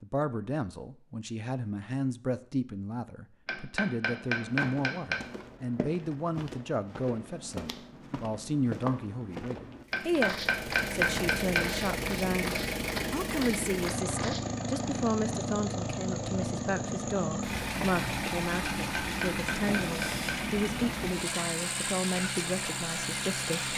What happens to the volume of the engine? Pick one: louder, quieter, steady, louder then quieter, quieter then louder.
steady.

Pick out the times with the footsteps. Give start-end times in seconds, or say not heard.
4.2-14.4.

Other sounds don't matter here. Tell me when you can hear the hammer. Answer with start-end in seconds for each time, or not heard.
3.5-5.2, 9.9-11.8, 18.8-20.5.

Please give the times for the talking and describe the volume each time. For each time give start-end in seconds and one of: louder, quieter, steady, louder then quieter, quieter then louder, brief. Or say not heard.
0.0-23.7 steady.